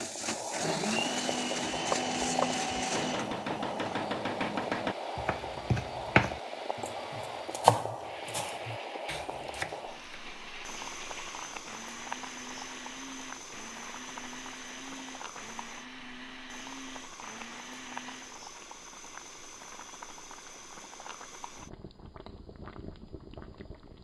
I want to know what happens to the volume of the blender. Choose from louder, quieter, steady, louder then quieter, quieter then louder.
quieter.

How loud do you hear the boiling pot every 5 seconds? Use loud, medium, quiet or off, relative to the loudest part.
loud, loud, medium, medium, medium.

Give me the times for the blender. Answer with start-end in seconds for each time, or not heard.
0.0-18.4.